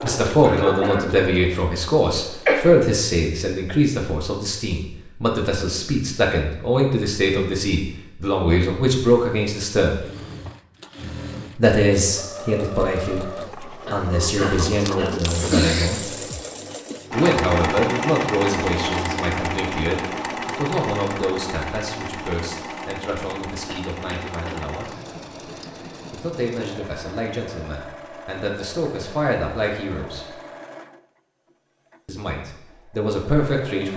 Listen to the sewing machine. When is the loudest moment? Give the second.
18 s.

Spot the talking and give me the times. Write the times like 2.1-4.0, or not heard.
0.0-10.1, 11.6-16.1, 17.1-24.9, 26.1-30.2, 32.0-33.9.